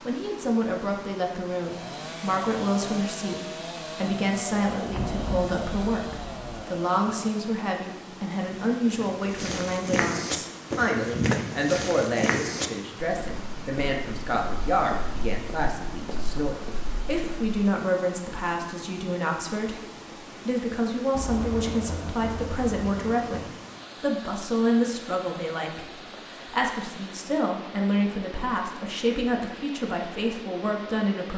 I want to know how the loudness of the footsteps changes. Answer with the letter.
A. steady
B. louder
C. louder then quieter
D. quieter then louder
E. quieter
E.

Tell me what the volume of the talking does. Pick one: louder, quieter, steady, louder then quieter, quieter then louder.
steady.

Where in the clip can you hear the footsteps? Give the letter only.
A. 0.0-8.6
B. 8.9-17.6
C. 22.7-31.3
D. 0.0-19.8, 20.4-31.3
B.